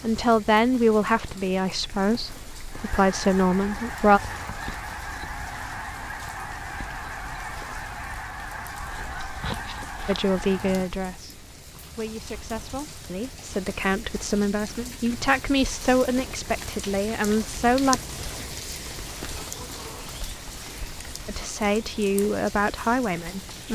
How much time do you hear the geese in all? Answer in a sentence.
You can hear the geese for 8 seconds altogether.